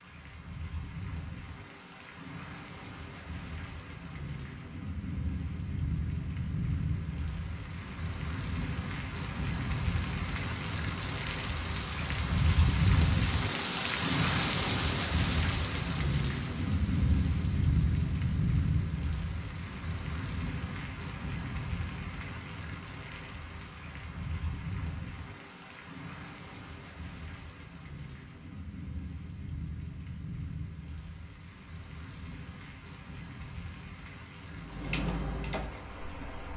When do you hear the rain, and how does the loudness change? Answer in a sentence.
You can hear the rain from 0.0 to 36.5 s, getting louder then quieter.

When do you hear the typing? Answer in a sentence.
The typing can be heard from 34.4 to 36.5 s.